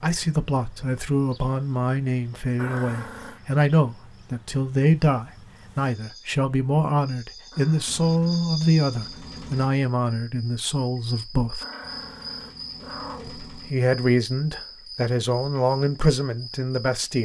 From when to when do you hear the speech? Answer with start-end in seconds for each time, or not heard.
0.0-11.7, 13.2-17.2.